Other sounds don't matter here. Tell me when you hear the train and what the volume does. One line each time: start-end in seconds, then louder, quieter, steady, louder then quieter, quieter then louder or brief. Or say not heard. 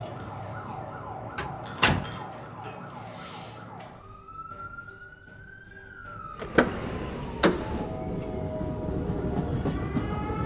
6.3-10.4 louder.